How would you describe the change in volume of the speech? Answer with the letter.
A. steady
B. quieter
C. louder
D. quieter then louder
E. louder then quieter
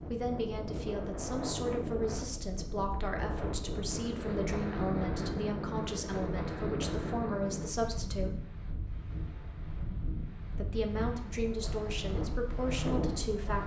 A.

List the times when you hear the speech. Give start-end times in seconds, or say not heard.
0.1-8.4, 10.5-13.6.